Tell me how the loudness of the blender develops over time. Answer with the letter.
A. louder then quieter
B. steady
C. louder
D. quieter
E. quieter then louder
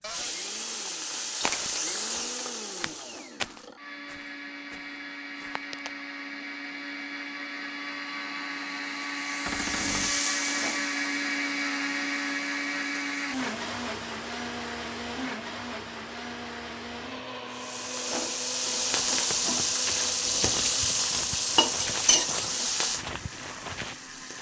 A.